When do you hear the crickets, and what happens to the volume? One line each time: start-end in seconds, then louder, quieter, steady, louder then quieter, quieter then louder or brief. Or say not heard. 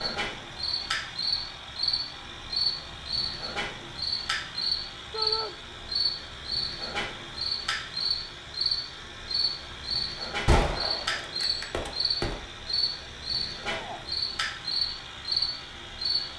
0.0-16.3 steady.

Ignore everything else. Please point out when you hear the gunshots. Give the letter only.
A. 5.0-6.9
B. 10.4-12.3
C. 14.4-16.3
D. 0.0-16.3
B.